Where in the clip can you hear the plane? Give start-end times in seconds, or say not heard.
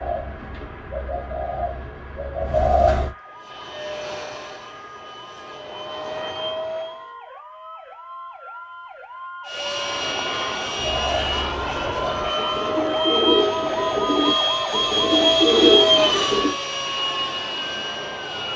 3.4-7.0, 9.5-18.5.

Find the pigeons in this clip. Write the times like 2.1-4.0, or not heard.
0.0-3.1, 10.8-16.6.